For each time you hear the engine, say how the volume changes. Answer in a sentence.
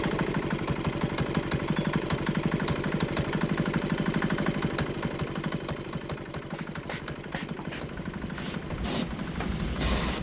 The engine can be heard from 0.0 to 10.1 s, getting quieter.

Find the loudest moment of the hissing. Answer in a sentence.
The volume of the hissing peaks at 10 seconds.